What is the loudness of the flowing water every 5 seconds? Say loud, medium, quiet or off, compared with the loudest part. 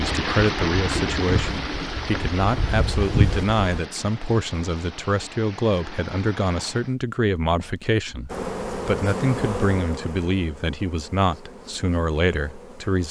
loud, medium, off.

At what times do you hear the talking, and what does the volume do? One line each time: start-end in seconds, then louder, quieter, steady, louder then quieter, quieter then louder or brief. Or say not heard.
0.0-13.0 steady.